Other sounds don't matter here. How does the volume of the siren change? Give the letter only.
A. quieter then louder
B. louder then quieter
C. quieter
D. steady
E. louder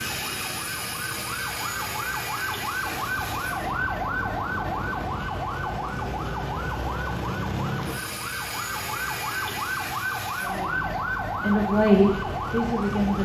D.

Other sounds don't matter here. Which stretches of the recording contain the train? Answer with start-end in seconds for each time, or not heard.
2.8-5.2.